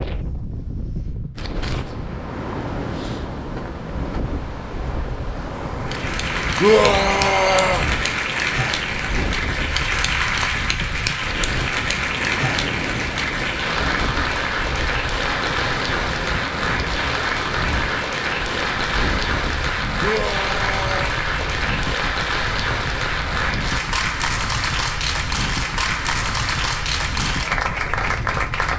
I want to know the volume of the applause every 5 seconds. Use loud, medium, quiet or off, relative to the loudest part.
off, loud, loud, loud, loud, loud.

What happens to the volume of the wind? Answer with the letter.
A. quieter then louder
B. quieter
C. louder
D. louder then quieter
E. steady
E.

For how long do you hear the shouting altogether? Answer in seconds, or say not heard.
2 s.